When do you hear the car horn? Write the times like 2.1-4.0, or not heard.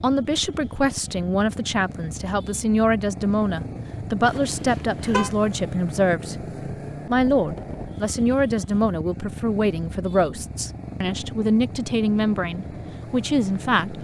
4.2-5.3.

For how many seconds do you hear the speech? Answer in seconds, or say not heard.
13 s.